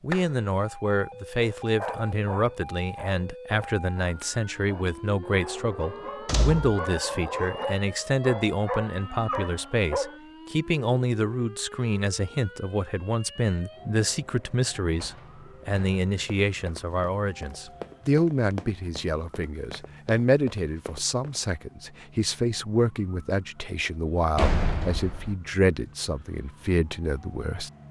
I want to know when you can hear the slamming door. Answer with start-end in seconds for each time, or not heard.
6.2-6.8, 14.9-16.0, 24.4-25.4.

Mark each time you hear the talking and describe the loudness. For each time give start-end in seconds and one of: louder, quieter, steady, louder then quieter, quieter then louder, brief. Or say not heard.
0.0-27.7 steady.